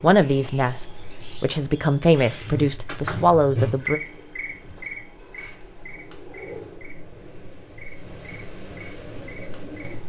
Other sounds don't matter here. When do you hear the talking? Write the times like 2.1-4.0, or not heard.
0.0-4.0.